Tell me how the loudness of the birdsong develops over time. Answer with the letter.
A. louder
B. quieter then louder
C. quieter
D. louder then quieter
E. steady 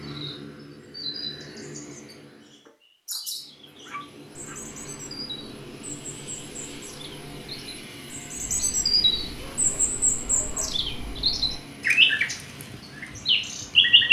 A.